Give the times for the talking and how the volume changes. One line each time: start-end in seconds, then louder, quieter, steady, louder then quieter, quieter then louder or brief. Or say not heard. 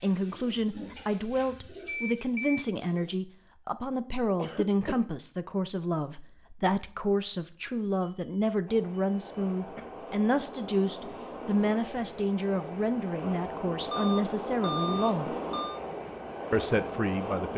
0.0-15.3 steady
16.5-17.5 brief.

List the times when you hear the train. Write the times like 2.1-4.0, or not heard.
8.7-17.5.